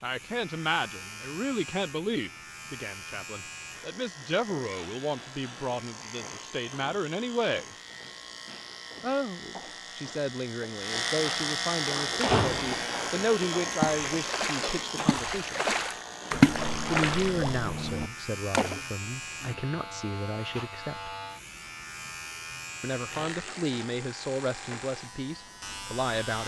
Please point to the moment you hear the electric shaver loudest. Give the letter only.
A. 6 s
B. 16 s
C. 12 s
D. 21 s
C.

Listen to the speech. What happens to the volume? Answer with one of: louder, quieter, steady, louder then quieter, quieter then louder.
steady.